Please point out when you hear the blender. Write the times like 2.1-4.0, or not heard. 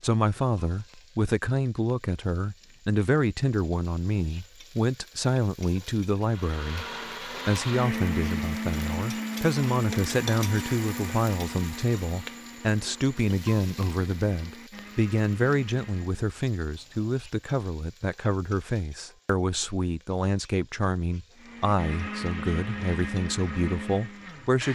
6.2-16.2, 21.4-24.6.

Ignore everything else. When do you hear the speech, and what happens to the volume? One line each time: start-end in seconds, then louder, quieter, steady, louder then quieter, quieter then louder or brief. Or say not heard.
0.0-24.6 steady.